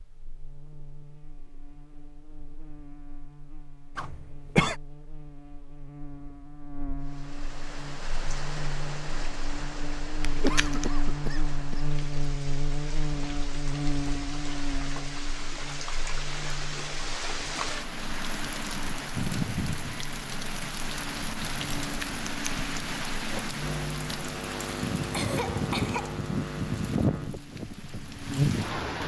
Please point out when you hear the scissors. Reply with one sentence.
You can hear the scissors from 10.2 to 10.8 s and from 21.9 to 22.6 s.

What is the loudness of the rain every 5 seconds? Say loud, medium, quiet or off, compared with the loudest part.
off, medium, medium, loud, loud, loud.